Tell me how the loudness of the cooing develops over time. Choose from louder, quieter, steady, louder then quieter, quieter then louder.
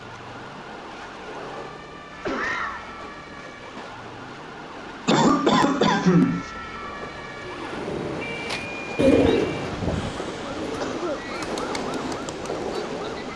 louder then quieter.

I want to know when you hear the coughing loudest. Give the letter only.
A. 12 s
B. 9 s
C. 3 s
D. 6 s
D.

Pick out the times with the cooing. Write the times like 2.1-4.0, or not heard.
7.3-12.8.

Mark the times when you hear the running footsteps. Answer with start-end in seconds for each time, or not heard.
not heard.